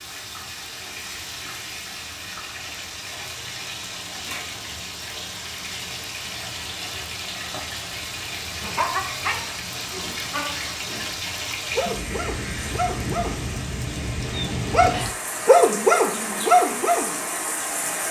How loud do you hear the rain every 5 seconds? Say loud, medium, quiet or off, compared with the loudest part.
medium, loud, loud, loud.